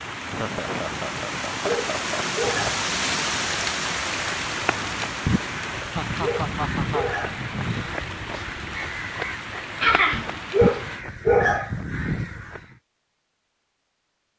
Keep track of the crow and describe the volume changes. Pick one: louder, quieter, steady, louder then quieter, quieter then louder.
steady.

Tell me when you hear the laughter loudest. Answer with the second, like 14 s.
10 s.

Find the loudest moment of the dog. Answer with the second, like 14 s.
11 s.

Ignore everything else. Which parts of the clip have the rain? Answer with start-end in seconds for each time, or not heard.
0.0-11.1.